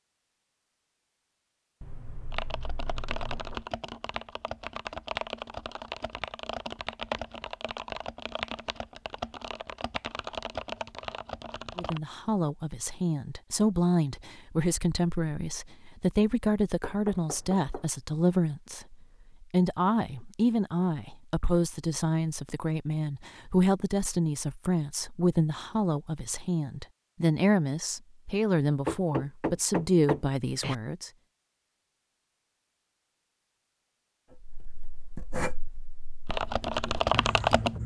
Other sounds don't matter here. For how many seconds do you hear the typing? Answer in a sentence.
The typing can be heard for 11 seconds in total.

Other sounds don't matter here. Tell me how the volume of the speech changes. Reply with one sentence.
The volume of the speech stays about the same.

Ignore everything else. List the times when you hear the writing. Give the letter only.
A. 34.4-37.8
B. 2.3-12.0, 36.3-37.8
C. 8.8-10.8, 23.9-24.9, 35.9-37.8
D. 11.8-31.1
A.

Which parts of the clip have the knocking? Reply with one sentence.
You can hear the knocking from 1.8 to 3.7 s, from 16.8 to 17.9 s and from 28.9 to 30.8 s.